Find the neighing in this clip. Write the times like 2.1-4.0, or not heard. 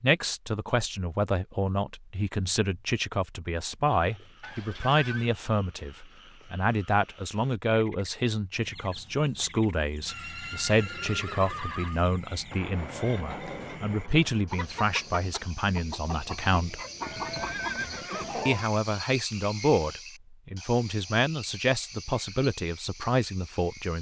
4.4-5.3, 10.1-12.1, 17.0-18.5.